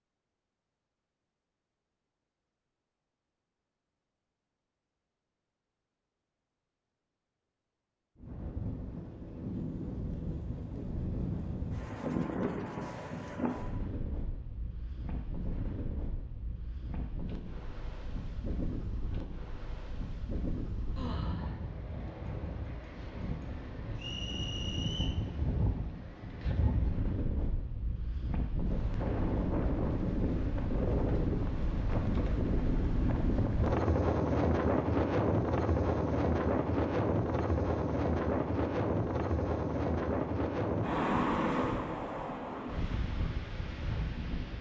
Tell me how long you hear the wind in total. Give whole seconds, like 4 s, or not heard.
36 s.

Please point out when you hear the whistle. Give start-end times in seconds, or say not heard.
23.9-25.1.